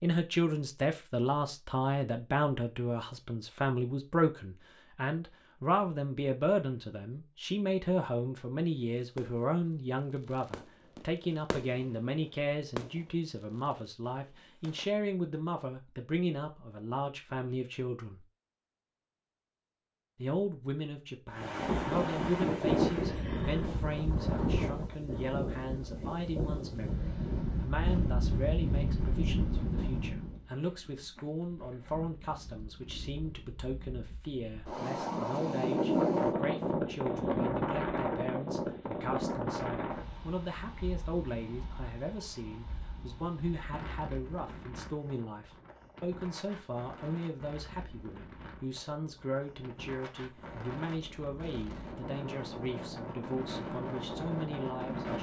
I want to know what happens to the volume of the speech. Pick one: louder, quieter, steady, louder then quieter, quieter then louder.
quieter.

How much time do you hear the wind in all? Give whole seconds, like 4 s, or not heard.
34 s.